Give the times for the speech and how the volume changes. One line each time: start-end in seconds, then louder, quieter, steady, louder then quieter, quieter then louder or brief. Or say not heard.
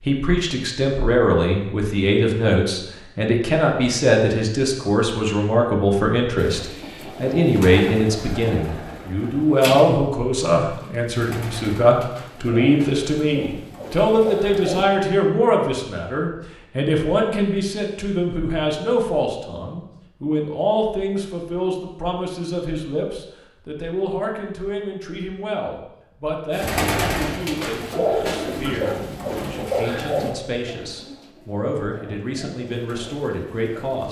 0.0-34.0 quieter.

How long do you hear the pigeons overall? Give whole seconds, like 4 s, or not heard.
16 s.